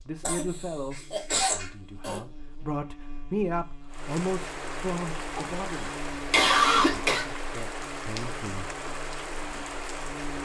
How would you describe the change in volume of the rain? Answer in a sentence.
The volume of the rain stays about the same.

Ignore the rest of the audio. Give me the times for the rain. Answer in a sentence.
The rain can be heard from 3.9 to 10.4 s.